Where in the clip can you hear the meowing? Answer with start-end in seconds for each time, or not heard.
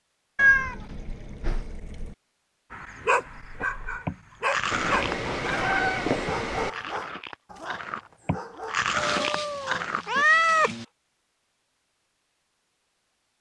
0.3-2.1, 4.7-6.7, 8.9-10.8.